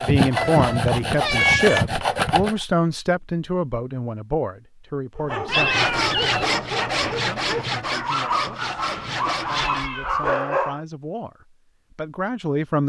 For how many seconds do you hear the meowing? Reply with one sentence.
The meowing can be heard for 3 seconds in total.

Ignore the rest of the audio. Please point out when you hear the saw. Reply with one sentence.
You can hear the saw from 0.0 to 2.6 s and from 5.5 to 9.9 s.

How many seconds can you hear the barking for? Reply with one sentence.
The barking can be heard for 6 seconds in total.